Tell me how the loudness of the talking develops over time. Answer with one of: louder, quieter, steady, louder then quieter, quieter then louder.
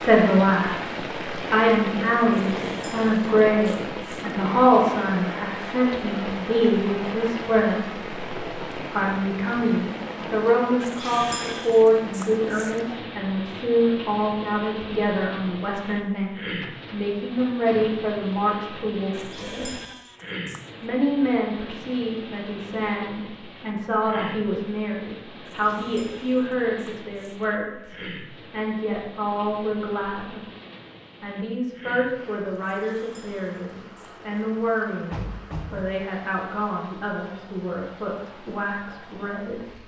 quieter.